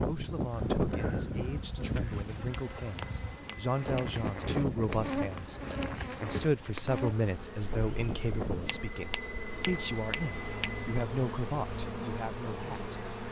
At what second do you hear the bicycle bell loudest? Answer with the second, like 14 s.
10 s.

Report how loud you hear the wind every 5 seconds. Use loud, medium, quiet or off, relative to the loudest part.
loud, medium, off.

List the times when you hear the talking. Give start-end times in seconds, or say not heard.
0.0-5.6, 6.2-13.1.